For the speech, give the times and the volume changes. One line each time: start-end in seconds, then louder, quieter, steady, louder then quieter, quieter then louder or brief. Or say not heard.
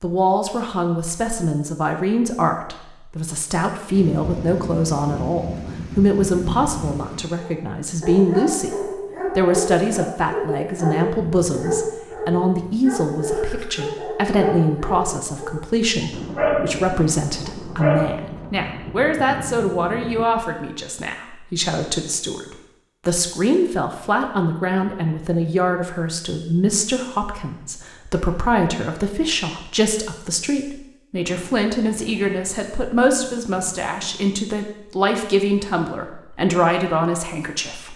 0.0-37.9 steady.